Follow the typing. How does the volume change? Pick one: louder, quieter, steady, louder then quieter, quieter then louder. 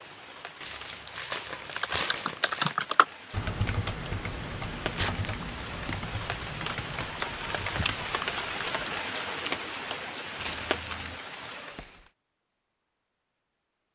quieter.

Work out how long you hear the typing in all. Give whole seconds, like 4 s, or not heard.
7 s.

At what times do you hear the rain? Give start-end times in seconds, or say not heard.
0.0-12.1.